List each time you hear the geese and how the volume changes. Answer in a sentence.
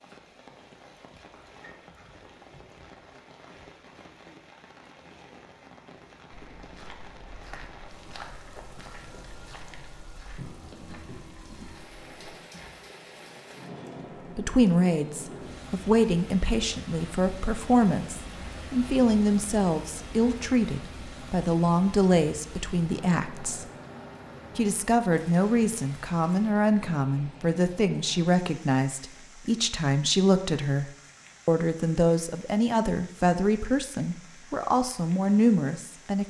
The geese can't be heard in this clip.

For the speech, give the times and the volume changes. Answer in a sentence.
You can hear the speech from 14.3 to 23.6 s, at a steady volume; and from 24.6 to 36.2 s, at a steady volume.